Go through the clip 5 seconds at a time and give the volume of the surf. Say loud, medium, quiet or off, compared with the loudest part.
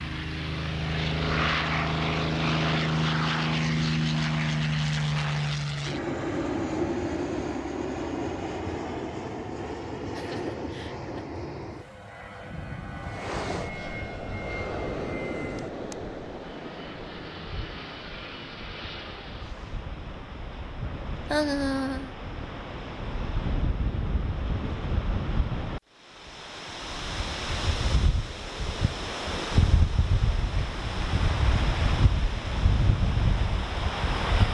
off, off, medium, medium, medium, loud, loud.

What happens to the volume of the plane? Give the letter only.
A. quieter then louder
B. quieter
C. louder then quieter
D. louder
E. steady
B.